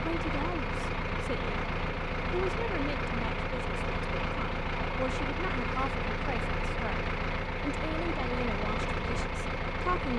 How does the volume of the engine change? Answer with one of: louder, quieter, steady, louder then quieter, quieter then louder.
steady.